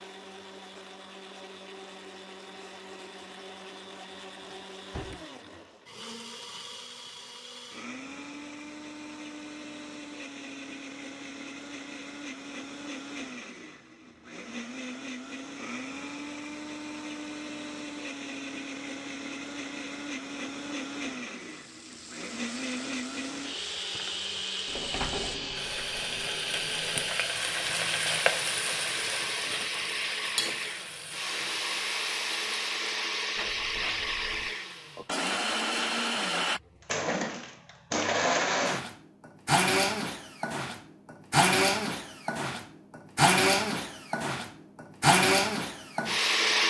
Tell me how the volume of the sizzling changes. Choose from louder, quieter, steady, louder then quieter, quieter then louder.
louder then quieter.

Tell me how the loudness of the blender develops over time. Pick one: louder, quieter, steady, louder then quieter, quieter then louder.
louder.